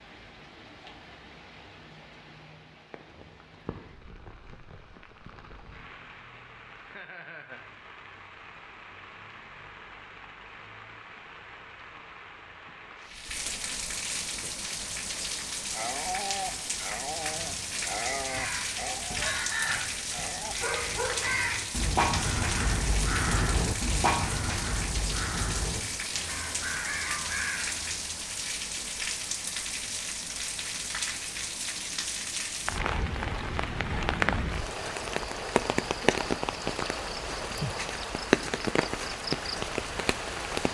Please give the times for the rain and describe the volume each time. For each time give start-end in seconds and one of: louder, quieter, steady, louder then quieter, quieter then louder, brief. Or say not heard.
0.0-40.6 louder.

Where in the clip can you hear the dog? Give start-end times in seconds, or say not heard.
15.7-21.4.